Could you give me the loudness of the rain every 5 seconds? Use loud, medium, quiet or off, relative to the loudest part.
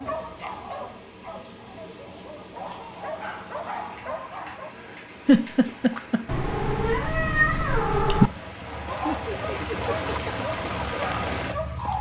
quiet, medium, loud.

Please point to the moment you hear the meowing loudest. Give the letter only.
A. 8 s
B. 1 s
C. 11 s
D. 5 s
A.